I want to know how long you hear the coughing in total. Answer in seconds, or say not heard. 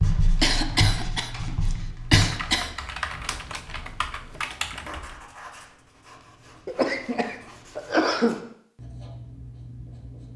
4 s.